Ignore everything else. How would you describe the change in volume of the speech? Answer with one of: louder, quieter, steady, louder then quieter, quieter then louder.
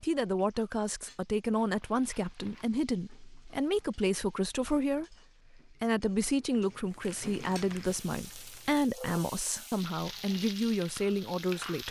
steady.